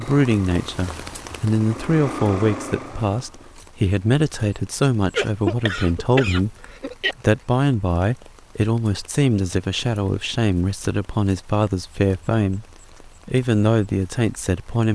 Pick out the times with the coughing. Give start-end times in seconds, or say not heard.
5.2-7.2.